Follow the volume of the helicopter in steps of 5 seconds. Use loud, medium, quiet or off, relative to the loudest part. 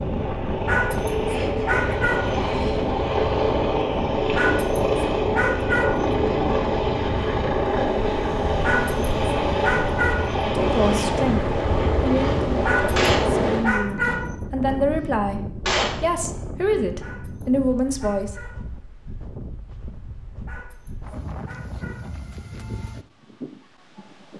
loud, loud, loud, off, off.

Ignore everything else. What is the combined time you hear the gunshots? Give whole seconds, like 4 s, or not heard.
3 s.